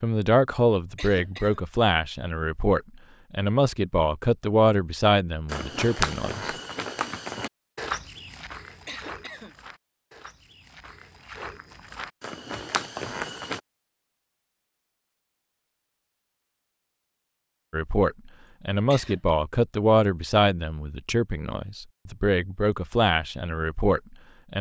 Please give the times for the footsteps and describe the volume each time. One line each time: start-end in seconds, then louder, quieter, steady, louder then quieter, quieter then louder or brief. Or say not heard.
5.5-13.6 quieter then louder.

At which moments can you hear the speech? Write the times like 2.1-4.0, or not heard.
0.0-6.5, 17.7-24.5.